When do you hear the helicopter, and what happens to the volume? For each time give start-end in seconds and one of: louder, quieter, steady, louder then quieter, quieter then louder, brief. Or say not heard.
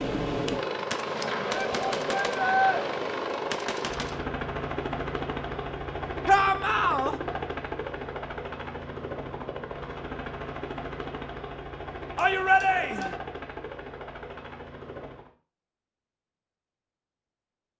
0.0-15.3 quieter.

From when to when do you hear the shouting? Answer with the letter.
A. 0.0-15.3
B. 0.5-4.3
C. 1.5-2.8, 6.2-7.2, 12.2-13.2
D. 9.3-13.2
C.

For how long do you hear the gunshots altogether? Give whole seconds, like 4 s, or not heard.
4 s.